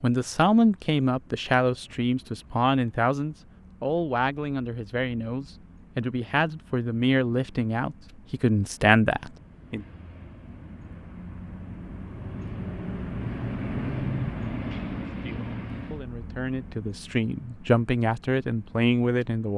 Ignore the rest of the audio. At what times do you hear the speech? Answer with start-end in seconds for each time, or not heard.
0.0-9.8, 15.1-19.5.